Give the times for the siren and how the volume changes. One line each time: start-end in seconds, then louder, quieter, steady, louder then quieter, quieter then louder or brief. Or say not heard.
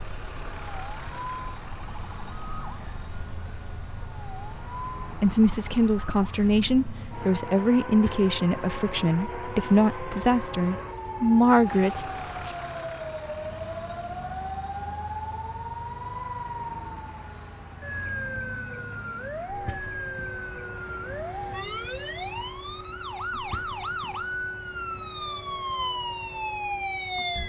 0.2-27.4 louder.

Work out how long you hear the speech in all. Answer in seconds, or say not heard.
7 s.